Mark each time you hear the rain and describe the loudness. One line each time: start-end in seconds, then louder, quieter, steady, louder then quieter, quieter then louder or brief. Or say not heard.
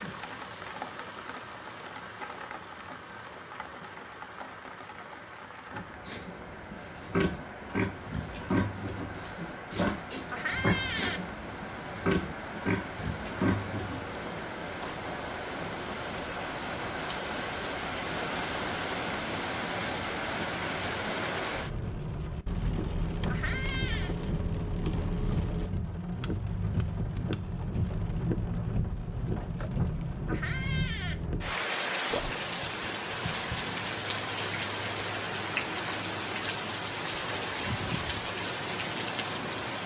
0.0-39.8 louder.